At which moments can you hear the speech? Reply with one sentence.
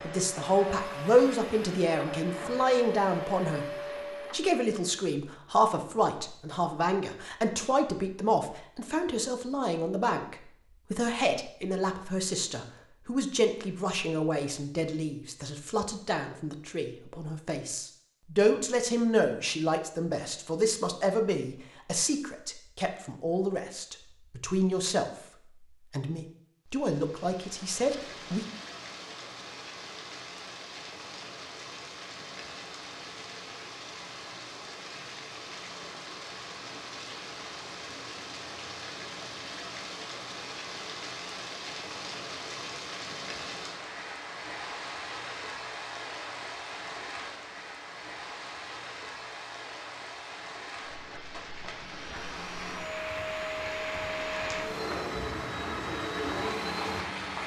You can hear the speech from 0.0 to 28.4 s.